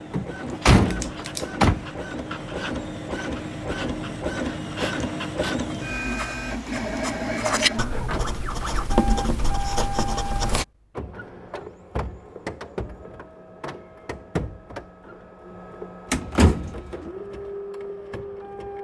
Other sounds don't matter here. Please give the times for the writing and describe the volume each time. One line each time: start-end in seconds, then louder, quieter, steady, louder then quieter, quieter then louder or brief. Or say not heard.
0.4-10.7 louder.